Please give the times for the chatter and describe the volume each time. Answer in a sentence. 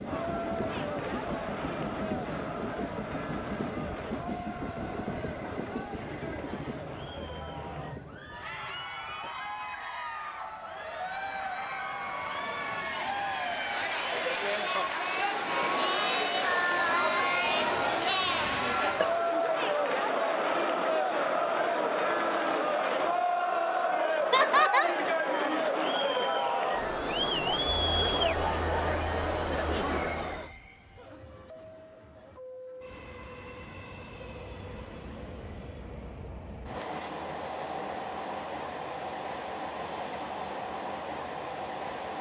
You can hear the chatter from 0.0 to 30.5 s, getting louder.